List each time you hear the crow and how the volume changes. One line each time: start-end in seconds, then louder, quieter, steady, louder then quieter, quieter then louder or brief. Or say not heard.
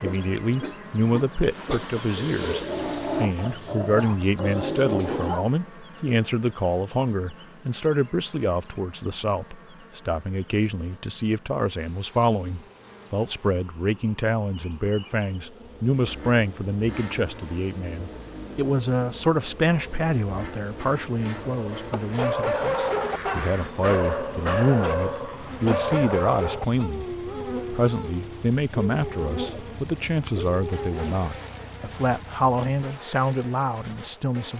not heard.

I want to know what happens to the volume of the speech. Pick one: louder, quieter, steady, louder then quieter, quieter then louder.
steady.